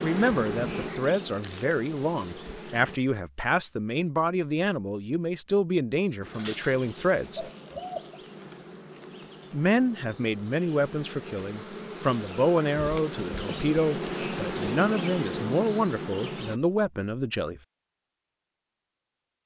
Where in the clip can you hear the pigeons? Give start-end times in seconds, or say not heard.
6.3-8.2.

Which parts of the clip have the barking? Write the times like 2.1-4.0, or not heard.
not heard.